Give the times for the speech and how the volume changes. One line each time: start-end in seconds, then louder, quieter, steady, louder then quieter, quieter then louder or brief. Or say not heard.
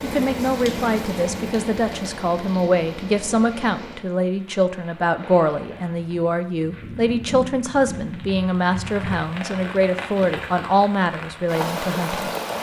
0.0-12.3 steady.